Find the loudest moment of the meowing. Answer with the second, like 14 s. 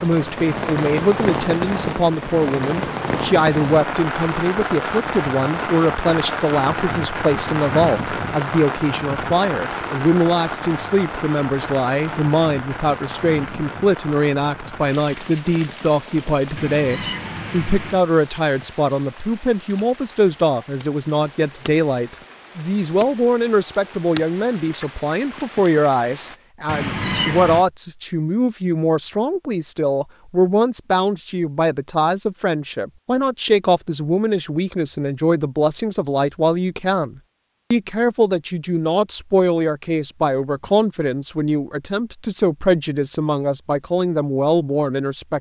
27 s.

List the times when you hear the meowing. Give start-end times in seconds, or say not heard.
16.6-18.0, 26.6-27.6.